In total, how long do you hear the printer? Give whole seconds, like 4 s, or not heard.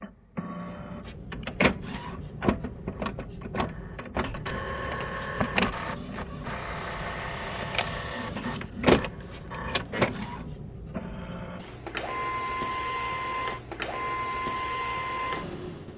16 s.